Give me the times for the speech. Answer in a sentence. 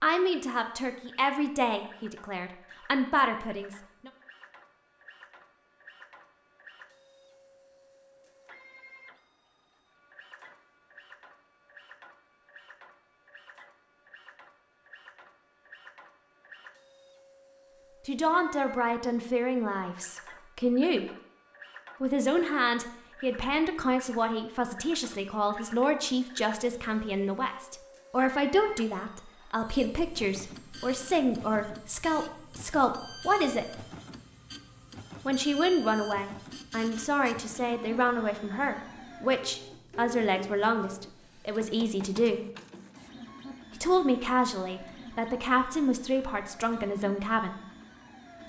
The speech can be heard from 0.0 to 4.1 s, from 18.1 to 21.1 s, from 22.0 to 33.9 s, from 35.2 to 42.5 s and from 43.8 to 47.6 s.